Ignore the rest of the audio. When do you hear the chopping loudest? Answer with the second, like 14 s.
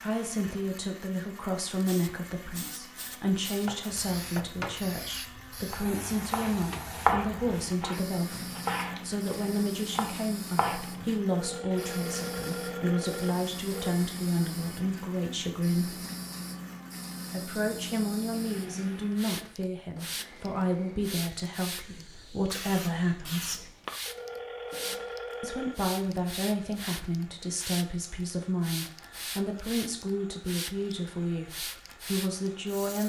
7 s.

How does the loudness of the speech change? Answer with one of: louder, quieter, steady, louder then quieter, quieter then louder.
steady.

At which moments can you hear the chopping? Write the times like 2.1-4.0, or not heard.
3.6-4.8, 5.7-11.1.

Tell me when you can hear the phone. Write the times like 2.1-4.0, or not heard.
11.3-14.0, 24.1-25.8.